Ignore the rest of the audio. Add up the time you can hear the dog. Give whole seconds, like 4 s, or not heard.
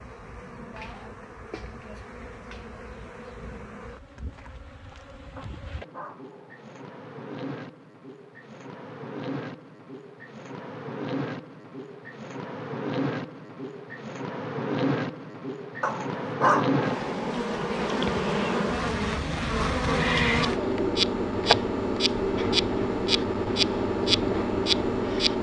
3 s.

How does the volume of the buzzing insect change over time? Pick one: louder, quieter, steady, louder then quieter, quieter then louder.
louder.